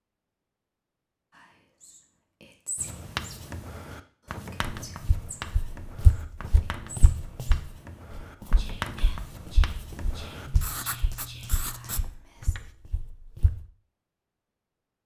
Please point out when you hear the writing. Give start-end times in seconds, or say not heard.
2.8-12.7.